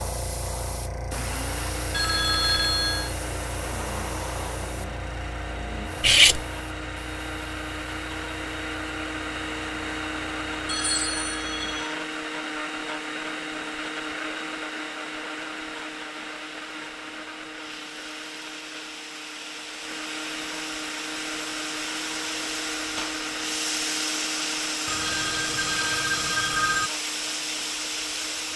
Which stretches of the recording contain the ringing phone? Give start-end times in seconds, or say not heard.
1.9-3.1, 10.7-11.9, 24.9-26.9.